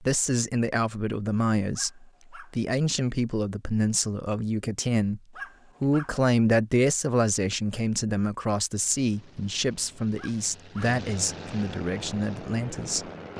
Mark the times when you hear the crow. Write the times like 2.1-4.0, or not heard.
not heard.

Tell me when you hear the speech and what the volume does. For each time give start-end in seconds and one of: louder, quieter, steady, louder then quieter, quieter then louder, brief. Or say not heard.
0.0-5.2 steady
5.8-13.3 quieter.